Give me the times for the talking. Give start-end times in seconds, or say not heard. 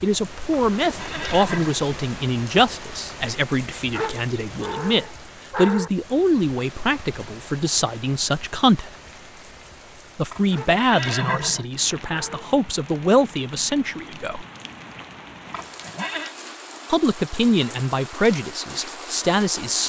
0.0-8.9, 10.2-14.4, 16.9-19.8.